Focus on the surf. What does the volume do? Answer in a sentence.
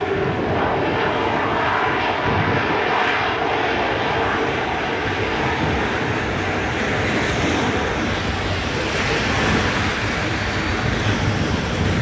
The loudness of the surf goes up.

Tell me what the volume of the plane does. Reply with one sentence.
The volume of the plane goes down.